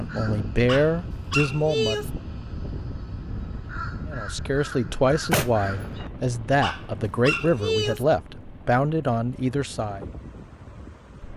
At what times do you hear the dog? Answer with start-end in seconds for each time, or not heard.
0.7-2.1, 6.6-8.1.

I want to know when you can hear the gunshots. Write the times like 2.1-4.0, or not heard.
5.1-6.0.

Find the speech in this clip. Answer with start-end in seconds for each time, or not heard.
0.0-2.0, 4.0-10.1.